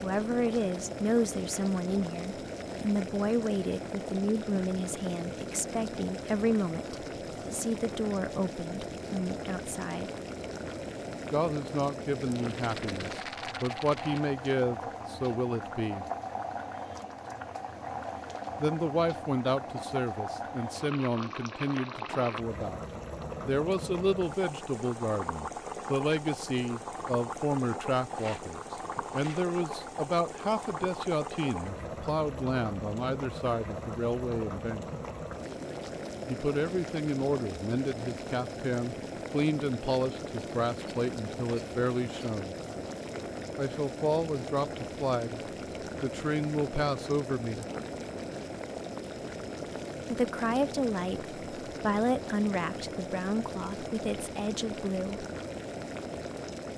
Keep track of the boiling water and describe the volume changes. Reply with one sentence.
The loudness of the boiling water stays about the same.